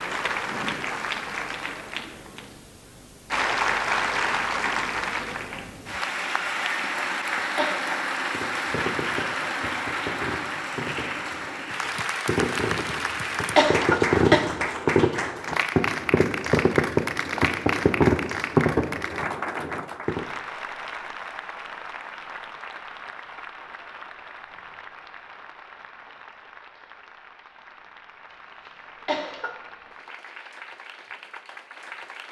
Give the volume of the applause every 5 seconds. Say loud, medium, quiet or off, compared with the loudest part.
loud, loud, loud, loud, medium, quiet, quiet.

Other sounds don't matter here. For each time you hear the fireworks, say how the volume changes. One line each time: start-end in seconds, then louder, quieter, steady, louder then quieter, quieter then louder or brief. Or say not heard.
8.3-20.2 louder.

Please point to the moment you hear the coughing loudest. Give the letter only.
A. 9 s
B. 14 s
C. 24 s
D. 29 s
B.